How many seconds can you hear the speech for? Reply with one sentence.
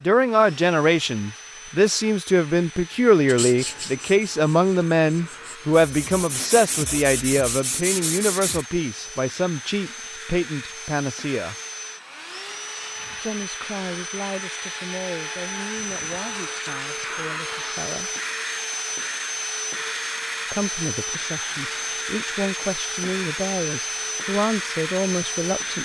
You can hear the speech for 22 seconds altogether.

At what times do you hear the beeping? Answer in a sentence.
You can't hear the beeping here.